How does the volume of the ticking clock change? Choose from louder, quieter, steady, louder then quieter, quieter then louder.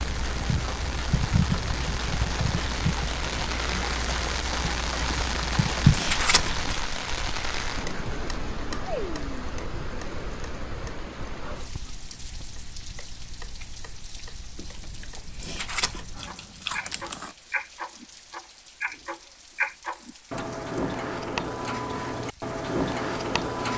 quieter then louder.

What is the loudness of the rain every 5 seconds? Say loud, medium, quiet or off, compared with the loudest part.
loud, loud, medium, quiet, quiet.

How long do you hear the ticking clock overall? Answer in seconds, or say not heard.
24 s.